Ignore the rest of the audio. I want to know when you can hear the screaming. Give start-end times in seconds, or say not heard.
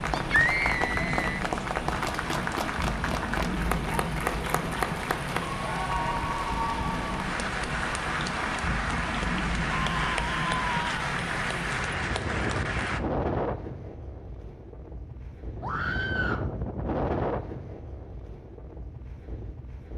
0.1-1.4, 9.7-11.1, 15.6-16.4.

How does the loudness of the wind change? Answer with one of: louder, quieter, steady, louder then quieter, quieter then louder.
steady.